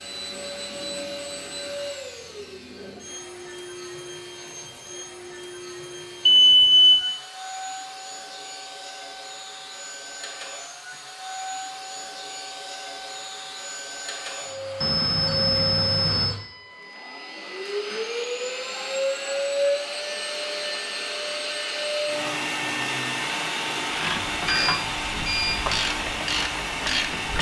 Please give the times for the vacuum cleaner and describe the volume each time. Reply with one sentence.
You can hear the vacuum cleaner from 0.0 to 27.3 s, getting louder.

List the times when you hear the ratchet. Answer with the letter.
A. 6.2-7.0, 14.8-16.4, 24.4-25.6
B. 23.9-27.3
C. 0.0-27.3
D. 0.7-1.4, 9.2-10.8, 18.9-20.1
B.